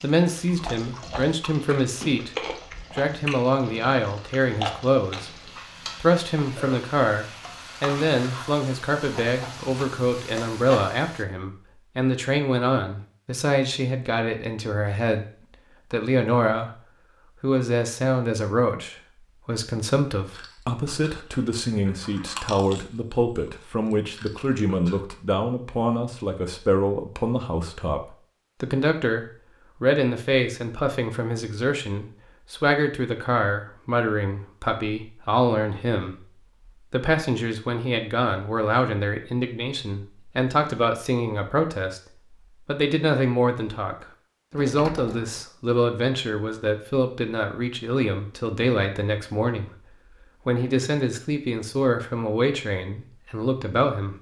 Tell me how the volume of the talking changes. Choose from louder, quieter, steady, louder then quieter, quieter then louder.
steady.